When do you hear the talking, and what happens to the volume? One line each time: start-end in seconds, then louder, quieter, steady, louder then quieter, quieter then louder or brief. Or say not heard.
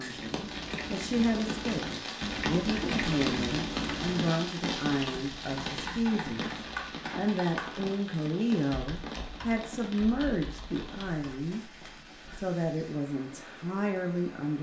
0.0-14.5 steady.